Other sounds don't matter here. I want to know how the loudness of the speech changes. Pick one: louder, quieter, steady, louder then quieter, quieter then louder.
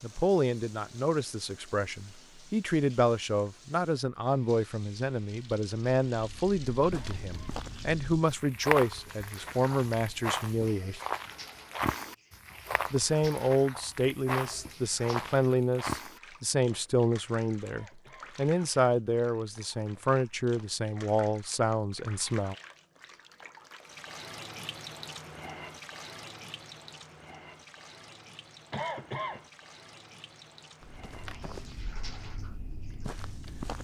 steady.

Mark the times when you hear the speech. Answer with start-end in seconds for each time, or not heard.
0.0-11.0, 12.9-22.6.